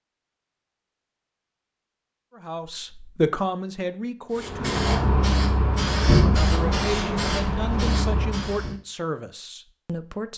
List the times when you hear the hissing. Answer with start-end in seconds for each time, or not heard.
4.3-8.8.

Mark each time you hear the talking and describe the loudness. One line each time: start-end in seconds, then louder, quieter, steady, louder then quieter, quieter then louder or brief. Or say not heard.
2.4-4.7 brief
6.2-10.3 quieter.